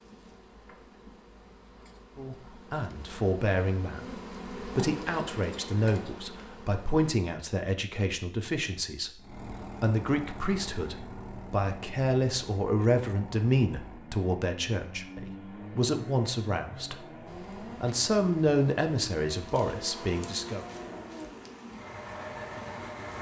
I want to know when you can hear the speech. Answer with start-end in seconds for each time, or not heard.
2.1-20.6.